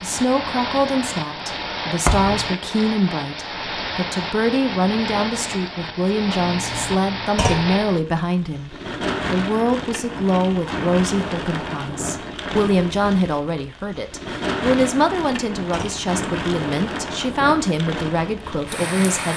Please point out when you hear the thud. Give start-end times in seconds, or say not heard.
2.0-2.5, 7.3-7.8, 15.7-16.1.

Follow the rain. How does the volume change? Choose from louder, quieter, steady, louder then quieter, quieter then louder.
steady.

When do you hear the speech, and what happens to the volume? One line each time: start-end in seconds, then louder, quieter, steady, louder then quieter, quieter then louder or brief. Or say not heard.
0.0-19.3 steady.